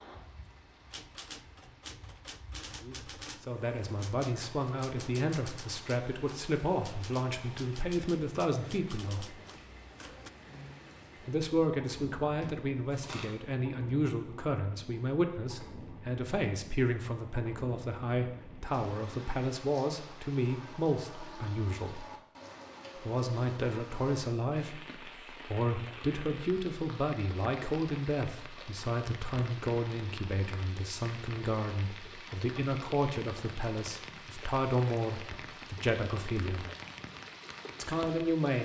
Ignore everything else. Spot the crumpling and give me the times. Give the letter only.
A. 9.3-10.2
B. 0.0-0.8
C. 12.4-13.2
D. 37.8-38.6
C.